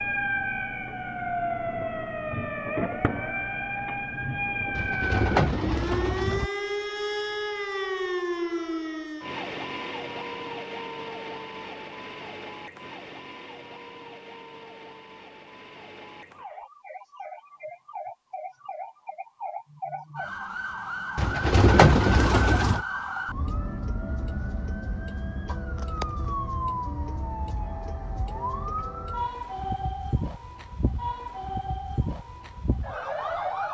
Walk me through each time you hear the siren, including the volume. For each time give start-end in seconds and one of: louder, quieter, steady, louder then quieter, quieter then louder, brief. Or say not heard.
0.0-33.6 quieter then louder.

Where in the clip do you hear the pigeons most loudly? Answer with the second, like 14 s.
22 s.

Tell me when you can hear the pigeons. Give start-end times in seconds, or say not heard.
4.8-6.5, 21.1-22.9.